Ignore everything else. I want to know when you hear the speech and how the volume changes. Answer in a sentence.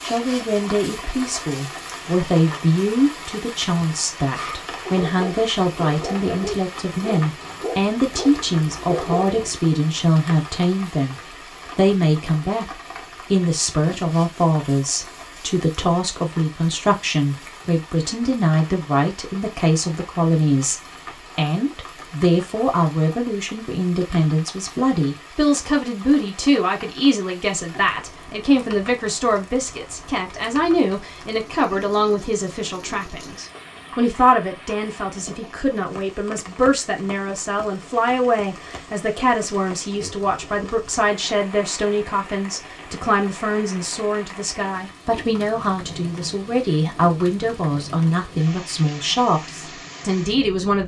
The speech can be heard from 0.0 to 50.8 s, at a steady volume.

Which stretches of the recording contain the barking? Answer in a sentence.
The barking can be heard from 4.3 to 9.6 s.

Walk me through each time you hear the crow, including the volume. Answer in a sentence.
You can't hear the crow here.